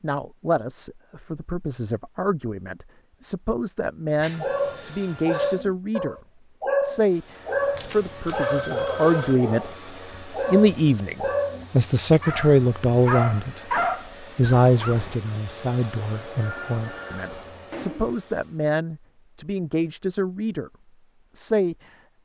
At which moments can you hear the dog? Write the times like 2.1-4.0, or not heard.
4.2-15.2.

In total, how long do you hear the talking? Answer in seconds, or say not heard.
20 s.